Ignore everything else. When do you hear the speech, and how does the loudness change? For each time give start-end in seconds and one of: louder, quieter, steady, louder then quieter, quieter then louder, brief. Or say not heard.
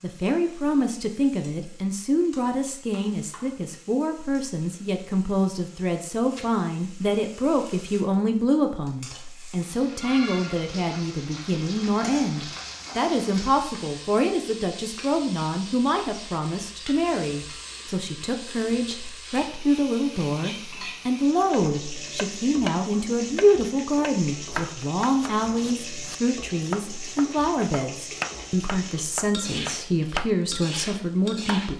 0.0-31.7 steady.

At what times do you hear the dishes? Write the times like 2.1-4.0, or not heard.
not heard.